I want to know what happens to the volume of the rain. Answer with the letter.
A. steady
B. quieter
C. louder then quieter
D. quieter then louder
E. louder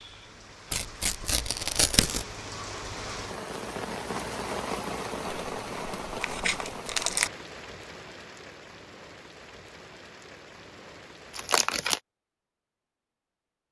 C.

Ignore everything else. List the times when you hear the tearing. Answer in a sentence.
You can hear the tearing from 0.7 to 2.2 s, from 5.5 to 7.3 s and from 11.3 to 12.0 s.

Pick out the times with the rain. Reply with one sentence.
The rain can be heard from 0.0 to 11.6 s.